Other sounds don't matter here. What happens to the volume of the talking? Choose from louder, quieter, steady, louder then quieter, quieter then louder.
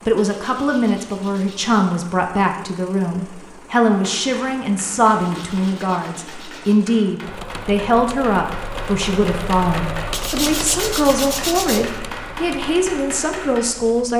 steady.